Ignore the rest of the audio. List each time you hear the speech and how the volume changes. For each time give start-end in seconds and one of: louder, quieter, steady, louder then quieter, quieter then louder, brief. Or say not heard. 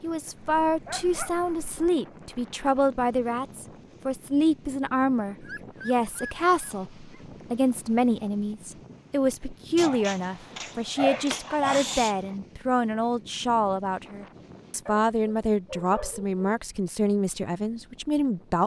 0.0-18.6 steady.